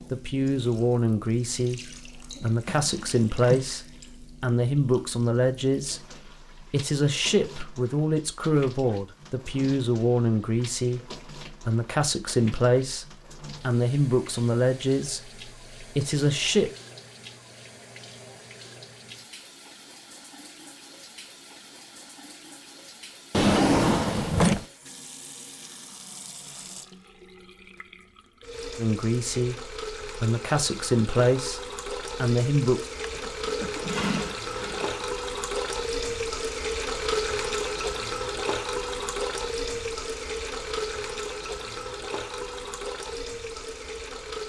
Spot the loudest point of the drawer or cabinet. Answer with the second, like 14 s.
24 s.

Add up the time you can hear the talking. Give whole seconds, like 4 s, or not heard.
21 s.